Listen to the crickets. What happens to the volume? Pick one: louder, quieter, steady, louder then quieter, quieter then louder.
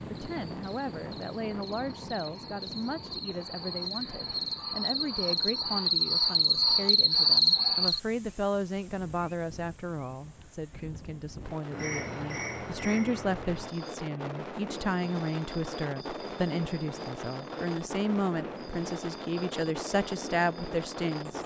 louder then quieter.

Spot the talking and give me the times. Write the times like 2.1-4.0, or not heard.
0.0-21.4.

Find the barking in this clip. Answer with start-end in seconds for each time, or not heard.
not heard.